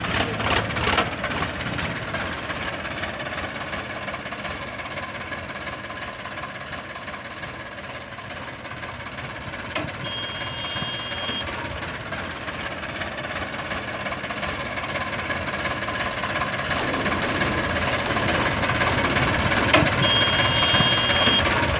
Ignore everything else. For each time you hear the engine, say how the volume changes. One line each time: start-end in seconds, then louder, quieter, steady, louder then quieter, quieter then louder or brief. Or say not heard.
0.0-21.7 quieter then louder.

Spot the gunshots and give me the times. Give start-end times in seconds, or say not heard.
16.8-19.9.